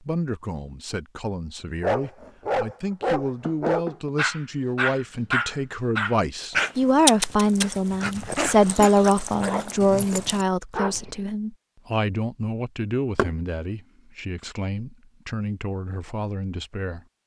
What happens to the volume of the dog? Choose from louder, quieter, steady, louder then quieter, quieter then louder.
quieter.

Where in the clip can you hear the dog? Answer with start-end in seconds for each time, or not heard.
1.8-11.2.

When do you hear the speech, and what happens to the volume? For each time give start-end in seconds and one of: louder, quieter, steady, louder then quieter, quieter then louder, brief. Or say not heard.
0.0-17.1 louder then quieter.